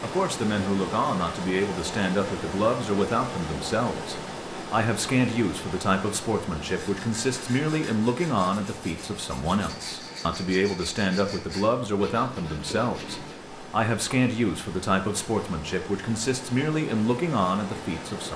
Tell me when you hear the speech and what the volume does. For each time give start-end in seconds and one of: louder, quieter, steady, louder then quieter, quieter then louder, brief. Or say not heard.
0.0-18.3 steady.